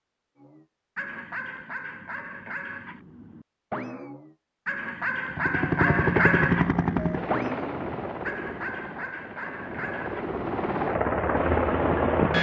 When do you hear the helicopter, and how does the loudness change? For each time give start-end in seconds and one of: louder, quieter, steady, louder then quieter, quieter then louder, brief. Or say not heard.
5.3-12.3 quieter then louder.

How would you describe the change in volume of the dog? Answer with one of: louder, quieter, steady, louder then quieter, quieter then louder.
louder then quieter.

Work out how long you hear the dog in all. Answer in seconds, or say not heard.
10 s.